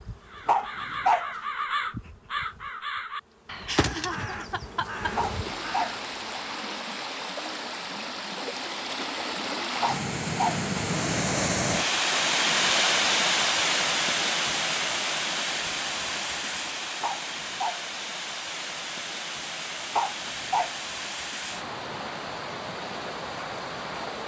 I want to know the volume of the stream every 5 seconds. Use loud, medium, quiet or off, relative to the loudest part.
off, medium, loud, medium, medium.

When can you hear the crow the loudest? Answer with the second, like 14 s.
2 s.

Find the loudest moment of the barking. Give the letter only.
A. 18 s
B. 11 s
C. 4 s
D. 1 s
D.